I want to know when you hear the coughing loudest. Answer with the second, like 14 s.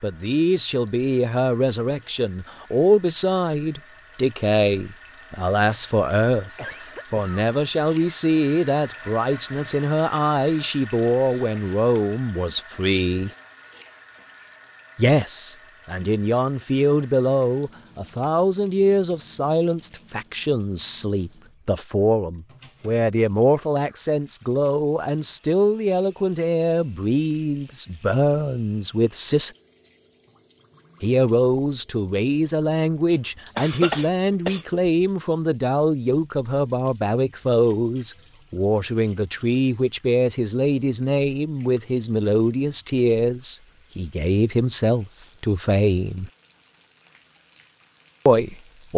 34 s.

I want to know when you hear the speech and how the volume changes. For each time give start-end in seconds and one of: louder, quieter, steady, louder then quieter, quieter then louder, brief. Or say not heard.
0.0-13.3 steady
14.9-29.5 steady
31.0-46.3 steady
48.2-48.9 brief.